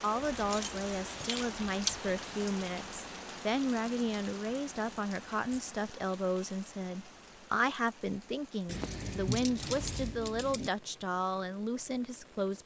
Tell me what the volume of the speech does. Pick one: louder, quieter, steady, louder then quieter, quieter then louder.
steady.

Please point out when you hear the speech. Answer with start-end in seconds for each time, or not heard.
0.0-12.6.